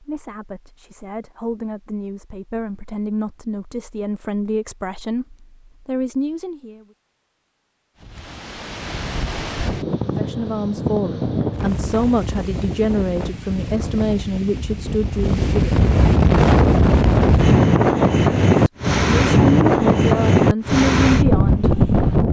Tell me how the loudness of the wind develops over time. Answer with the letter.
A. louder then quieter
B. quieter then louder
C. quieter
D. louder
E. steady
D.